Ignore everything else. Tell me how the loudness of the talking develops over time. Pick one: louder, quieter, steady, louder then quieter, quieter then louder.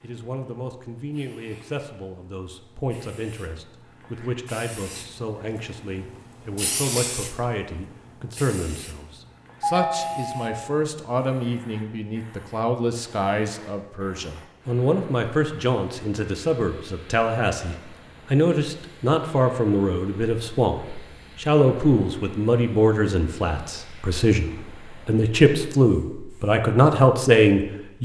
louder.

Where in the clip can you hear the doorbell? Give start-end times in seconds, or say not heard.
9.6-10.8.